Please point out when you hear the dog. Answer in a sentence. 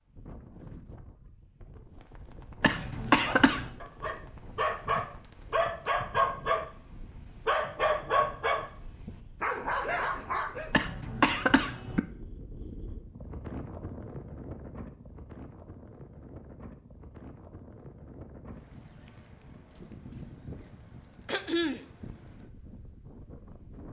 You can hear the dog from 2.8 to 10.7 s.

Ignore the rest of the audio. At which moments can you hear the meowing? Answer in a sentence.
The meowing can't be heard in this clip.